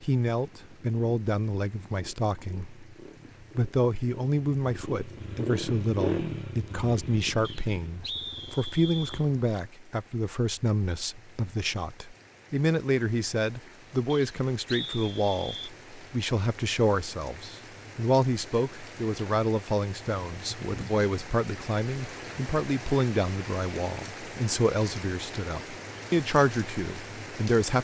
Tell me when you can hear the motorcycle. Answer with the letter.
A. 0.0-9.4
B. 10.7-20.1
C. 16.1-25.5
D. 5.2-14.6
A.